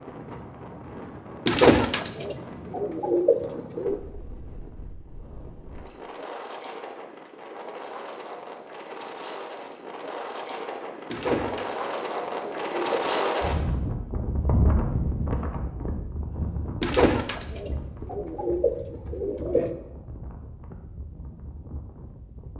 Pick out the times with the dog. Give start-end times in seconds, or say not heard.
not heard.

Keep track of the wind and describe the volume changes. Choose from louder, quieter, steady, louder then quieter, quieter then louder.
louder then quieter.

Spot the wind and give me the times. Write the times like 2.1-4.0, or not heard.
0.0-22.5.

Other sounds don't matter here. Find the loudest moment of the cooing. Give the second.
2 s.